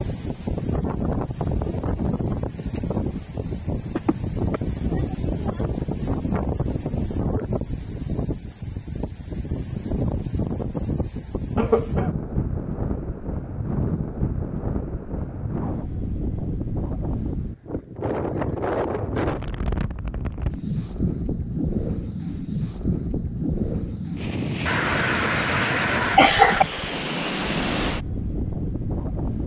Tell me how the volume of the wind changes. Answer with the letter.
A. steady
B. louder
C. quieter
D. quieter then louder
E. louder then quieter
A.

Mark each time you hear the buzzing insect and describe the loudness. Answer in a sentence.
You can't hear the buzzing insect here.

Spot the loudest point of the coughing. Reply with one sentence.
The volume of the coughing peaks at 26 seconds.